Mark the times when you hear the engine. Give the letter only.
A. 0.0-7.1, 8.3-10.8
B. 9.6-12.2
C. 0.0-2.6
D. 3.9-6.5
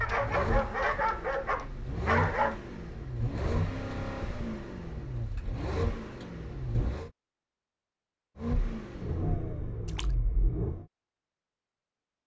A.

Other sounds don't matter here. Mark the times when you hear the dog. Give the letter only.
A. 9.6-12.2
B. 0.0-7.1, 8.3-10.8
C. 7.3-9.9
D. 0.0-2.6
D.